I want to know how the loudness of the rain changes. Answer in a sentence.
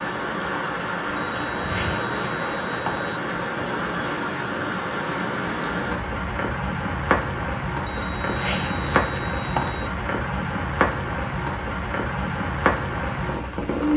The loudness of the rain stays about the same.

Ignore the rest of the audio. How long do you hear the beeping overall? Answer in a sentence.
The beeping can be heard for 4 seconds in total.